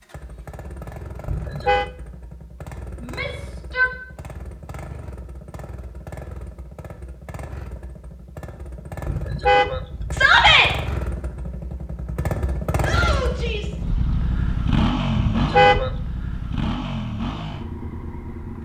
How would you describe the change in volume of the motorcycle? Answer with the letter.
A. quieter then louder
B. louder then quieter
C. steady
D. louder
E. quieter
D.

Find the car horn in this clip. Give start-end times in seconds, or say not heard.
1.2-1.9, 9.1-10.7, 15.2-16.0.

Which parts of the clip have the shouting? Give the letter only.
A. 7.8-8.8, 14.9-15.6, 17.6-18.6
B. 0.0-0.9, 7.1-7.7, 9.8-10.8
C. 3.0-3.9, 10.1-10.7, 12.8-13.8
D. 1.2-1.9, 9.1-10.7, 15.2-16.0
C.